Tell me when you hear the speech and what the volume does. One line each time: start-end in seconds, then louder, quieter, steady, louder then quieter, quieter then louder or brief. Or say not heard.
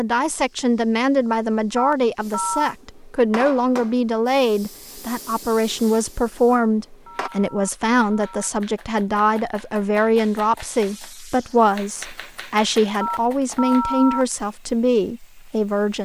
0.0-15.9 steady.